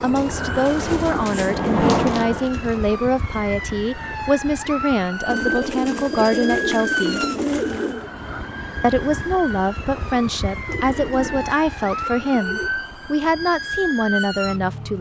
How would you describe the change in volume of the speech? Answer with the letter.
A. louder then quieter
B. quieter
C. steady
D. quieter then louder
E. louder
C.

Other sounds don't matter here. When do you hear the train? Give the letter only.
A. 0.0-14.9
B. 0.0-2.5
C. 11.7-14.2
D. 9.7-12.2
B.